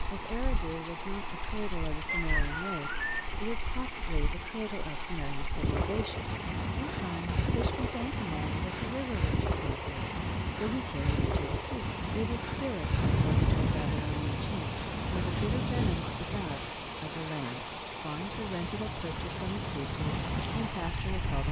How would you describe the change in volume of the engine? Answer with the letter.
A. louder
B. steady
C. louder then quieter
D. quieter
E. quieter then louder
B.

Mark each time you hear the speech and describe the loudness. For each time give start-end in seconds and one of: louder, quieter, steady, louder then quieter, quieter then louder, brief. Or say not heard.
0.0-21.4 steady.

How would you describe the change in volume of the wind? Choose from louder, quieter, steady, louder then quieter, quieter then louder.
louder then quieter.